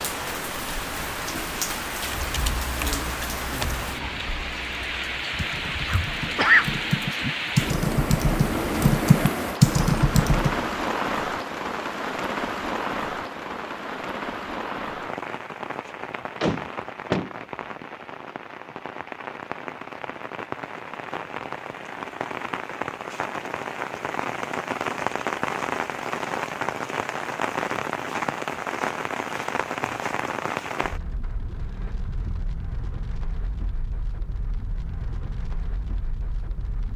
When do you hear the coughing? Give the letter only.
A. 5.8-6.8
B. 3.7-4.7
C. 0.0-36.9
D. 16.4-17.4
A.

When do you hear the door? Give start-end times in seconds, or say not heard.
16.4-17.4.